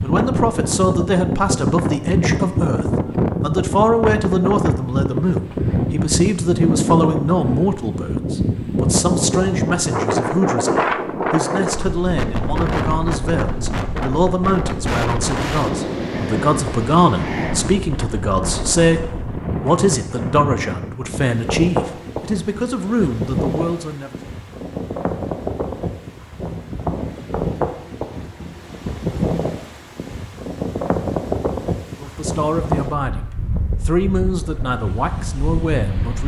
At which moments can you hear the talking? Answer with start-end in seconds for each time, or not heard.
0.0-24.1, 32.0-36.2.